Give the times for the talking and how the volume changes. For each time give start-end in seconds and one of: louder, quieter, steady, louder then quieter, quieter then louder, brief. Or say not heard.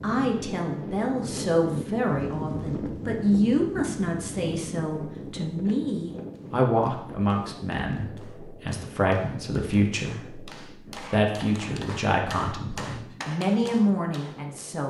0.0-14.8 steady.